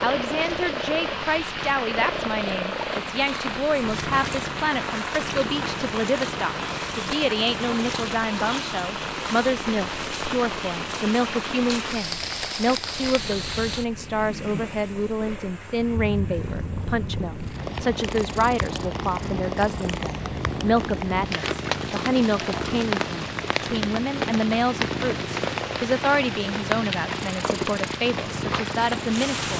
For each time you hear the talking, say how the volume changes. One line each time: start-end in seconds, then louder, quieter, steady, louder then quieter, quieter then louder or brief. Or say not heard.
0.0-29.5 steady.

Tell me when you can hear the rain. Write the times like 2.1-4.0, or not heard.
0.0-29.5.